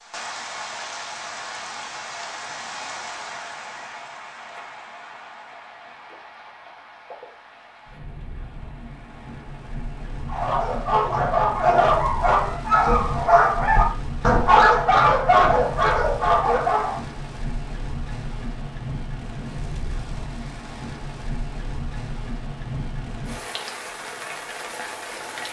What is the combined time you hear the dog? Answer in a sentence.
You can hear the dog for 7 seconds altogether.